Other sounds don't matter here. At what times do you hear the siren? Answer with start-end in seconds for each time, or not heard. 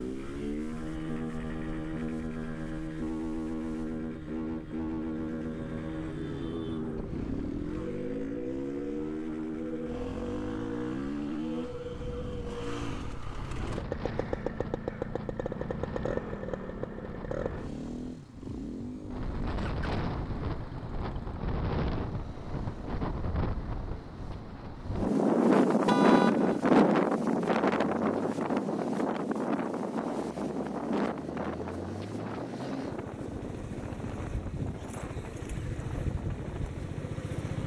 not heard.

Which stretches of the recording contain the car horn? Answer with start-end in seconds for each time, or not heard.
25.9-26.6.